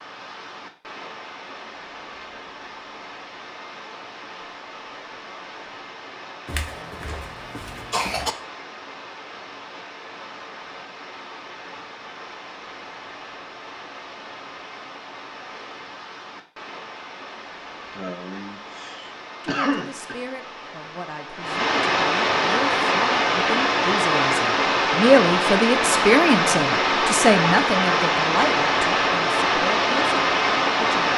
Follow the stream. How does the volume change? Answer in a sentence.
The loudness of the stream goes up.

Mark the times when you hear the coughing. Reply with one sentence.
The coughing can be heard from 6.5 to 8.3 s and from 17.9 to 20.1 s.